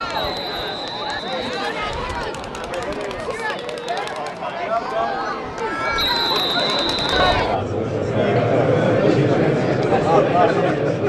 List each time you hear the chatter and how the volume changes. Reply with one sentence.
The chatter can be heard from 0.0 to 11.0 s, getting louder.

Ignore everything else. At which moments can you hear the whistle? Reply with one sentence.
You can hear the whistle from 0.1 to 2.1 s and from 6.0 to 7.4 s.